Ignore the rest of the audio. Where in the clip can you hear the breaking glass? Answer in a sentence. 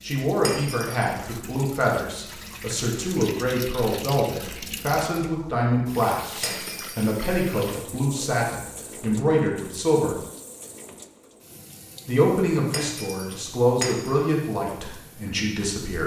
The breaking glass can be heard from 0.4 to 1.1 s, from 6.4 to 7.1 s and from 12.7 to 14.2 s.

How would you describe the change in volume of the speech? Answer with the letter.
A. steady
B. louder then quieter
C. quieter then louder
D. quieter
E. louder
A.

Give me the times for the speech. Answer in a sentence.
You can hear the speech from 0.0 to 10.2 s and from 12.1 to 16.0 s.